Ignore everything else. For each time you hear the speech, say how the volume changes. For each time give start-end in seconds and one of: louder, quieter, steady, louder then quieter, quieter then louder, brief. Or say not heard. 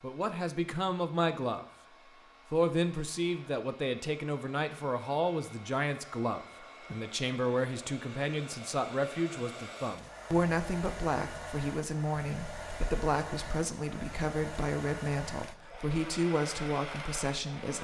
0.0-1.6 brief
2.5-17.7 steady.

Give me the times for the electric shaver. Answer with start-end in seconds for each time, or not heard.
not heard.